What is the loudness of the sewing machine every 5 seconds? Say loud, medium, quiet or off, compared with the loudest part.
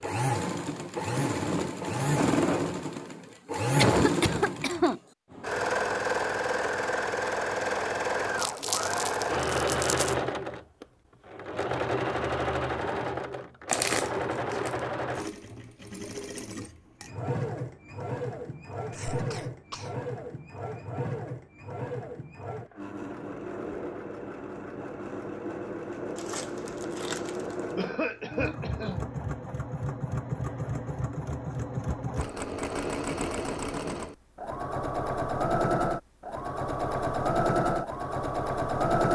loud, loud, loud, medium, medium, medium, medium, loud.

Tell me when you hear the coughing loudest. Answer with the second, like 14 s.
4 s.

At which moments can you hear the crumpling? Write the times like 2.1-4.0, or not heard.
8.3-10.2, 13.7-14.8, 26.1-27.8.